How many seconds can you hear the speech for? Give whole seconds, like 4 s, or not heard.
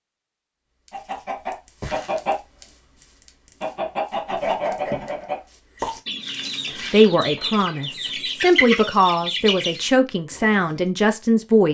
5 s.